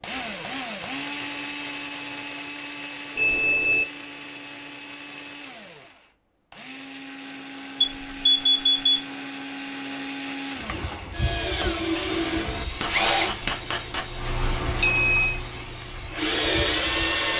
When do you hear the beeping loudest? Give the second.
15 s.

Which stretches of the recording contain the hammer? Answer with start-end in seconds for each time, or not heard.
12.1-14.1.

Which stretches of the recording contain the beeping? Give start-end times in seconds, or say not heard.
3.1-3.9, 7.8-9.0, 14.4-15.3.